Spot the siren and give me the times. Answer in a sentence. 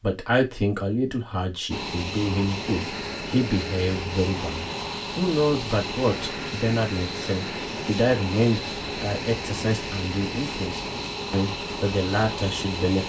The siren can't be heard in this clip.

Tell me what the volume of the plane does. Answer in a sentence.
The volume of the plane stays about the same.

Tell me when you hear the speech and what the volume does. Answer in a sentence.
You can hear the speech from 0.0 to 13.0 s, at a steady volume.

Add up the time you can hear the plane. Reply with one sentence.
You can hear the plane for 11 seconds altogether.